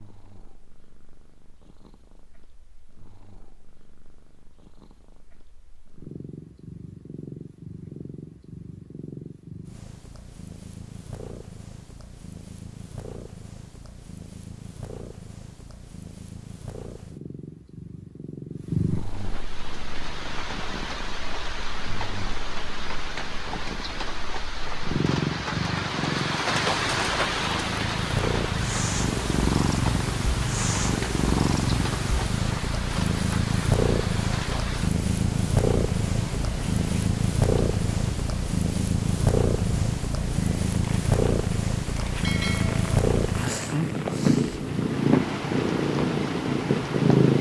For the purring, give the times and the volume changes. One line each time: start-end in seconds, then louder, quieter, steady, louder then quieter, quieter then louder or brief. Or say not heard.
0.0-47.3 louder.